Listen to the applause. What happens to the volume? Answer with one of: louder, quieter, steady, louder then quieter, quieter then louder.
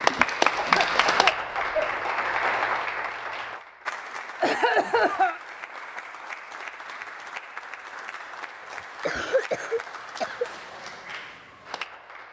quieter.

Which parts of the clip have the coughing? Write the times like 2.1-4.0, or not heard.
0.6-2.0, 4.4-5.4, 9.0-10.4.